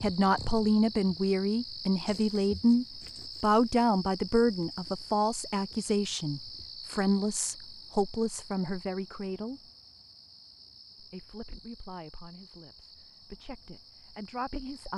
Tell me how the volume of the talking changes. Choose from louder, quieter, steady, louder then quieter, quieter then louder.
quieter.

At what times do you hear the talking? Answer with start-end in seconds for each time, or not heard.
0.0-9.6, 11.0-14.9.